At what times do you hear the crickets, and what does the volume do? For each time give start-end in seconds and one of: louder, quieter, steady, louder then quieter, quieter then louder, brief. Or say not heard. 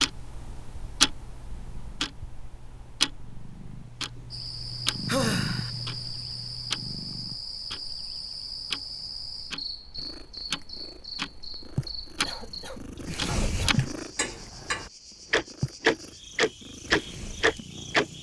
4.3-18.1 quieter.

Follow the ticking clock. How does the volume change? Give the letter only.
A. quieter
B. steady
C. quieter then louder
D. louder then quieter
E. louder
C.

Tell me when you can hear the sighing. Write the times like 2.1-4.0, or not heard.
5.0-5.7.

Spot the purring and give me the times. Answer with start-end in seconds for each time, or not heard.
0.0-7.4, 9.9-18.1.